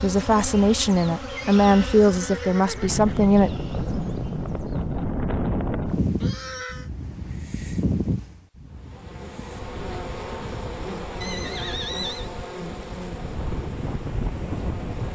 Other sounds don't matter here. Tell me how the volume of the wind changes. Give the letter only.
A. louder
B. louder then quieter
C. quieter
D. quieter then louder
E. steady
D.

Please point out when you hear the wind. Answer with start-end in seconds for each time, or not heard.
2.7-15.1.